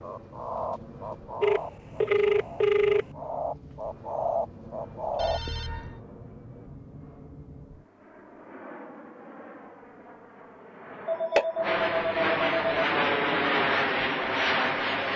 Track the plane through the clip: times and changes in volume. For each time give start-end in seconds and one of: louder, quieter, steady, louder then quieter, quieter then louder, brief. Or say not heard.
0.0-15.1 louder.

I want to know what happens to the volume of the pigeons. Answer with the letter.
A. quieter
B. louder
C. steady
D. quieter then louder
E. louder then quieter
D.